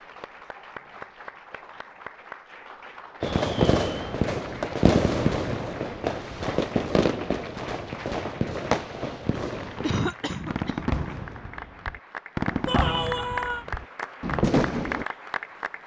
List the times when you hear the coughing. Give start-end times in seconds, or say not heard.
9.8-10.9.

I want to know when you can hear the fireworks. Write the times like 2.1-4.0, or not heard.
3.2-15.1.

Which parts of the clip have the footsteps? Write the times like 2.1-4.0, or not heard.
not heard.